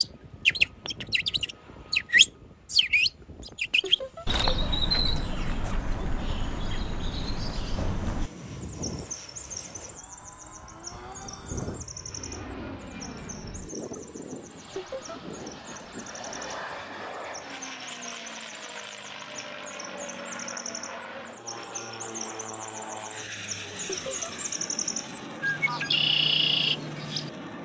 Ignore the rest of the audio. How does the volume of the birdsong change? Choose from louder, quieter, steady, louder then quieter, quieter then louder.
quieter then louder.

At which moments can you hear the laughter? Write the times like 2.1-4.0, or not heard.
3.8-4.2, 14.8-15.2, 23.9-24.3.